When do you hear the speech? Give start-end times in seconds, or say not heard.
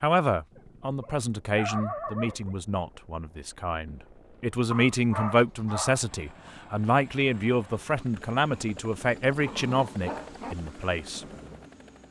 0.0-11.2.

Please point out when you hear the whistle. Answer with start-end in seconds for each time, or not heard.
not heard.